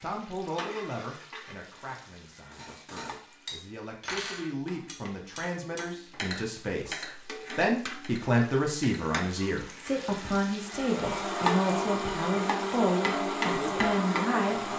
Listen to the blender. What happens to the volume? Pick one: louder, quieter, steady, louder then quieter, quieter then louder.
steady.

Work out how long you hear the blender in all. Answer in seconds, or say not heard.
4 s.